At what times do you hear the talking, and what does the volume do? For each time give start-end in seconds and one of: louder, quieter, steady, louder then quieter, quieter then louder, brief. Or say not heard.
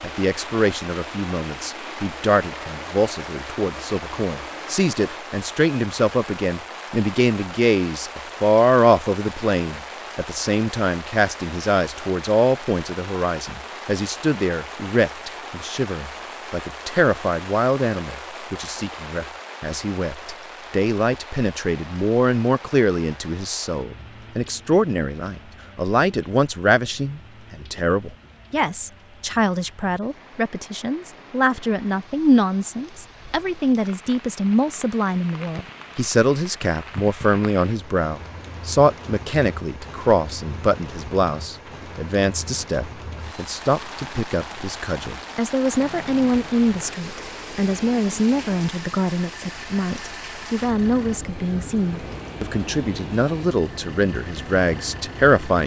0.0-55.6 steady.